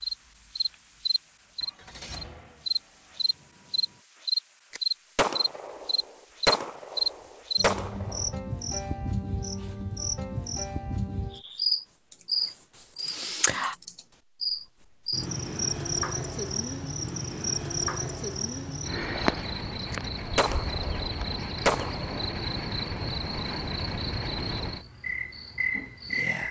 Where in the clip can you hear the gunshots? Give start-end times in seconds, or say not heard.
4.7-8.3, 19.9-22.4.